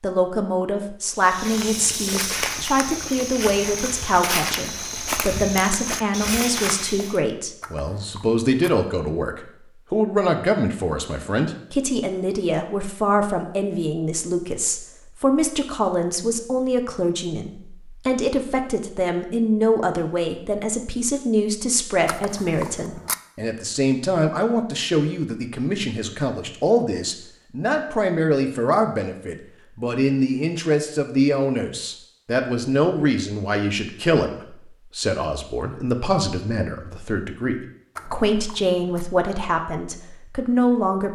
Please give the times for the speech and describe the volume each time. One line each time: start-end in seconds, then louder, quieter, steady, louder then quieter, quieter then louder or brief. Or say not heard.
0.0-41.1 steady.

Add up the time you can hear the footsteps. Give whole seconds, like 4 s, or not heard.
6 s.